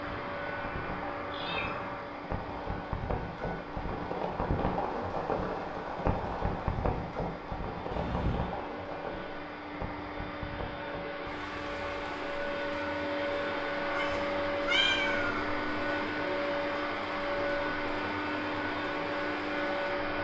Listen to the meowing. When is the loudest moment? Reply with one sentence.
The volume of the meowing peaks at 15 seconds.